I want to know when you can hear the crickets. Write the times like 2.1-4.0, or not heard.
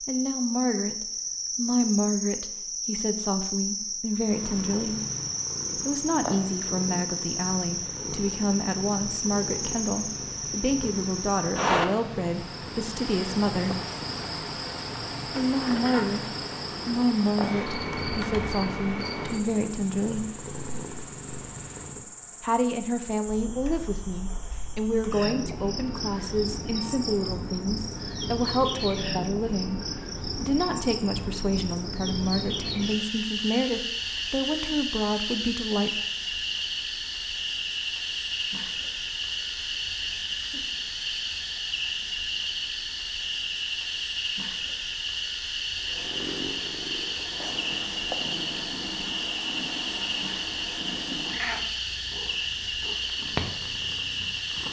0.0-54.6.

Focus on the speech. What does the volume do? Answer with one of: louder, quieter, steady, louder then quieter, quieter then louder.
steady.